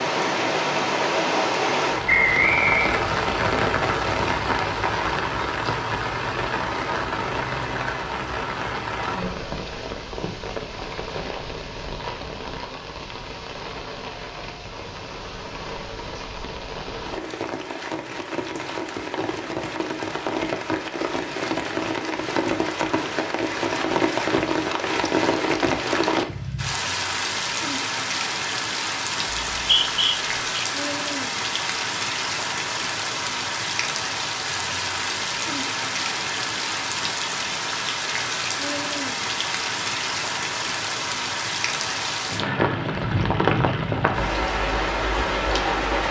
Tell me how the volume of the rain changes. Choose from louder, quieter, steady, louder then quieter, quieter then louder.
quieter then louder.